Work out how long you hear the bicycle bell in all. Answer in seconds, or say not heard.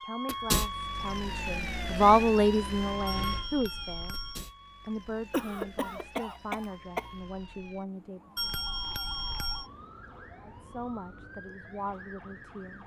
3 s.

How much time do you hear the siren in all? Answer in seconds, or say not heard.
13 s.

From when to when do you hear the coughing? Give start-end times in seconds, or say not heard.
5.3-7.1.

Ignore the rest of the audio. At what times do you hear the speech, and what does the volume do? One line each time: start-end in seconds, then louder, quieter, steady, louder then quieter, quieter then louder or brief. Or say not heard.
0.1-8.5 louder then quieter
10.4-12.8 brief.